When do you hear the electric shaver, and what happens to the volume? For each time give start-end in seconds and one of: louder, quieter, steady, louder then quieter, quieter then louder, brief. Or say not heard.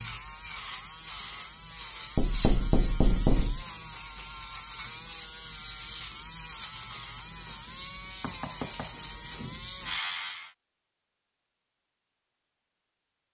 0.0-10.5 steady.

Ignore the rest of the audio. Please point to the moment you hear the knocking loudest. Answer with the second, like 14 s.
3 s.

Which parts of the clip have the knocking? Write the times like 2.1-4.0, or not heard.
2.1-3.6, 8.2-9.0.